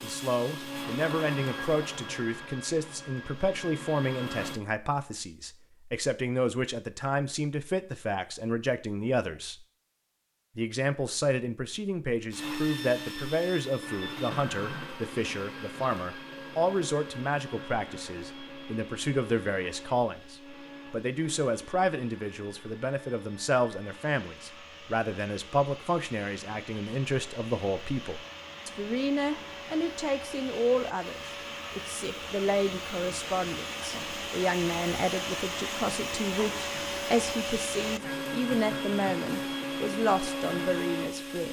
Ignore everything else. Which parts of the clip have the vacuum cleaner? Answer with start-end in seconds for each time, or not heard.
0.0-4.6, 12.3-41.4.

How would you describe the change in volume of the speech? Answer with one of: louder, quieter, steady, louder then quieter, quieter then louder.
steady.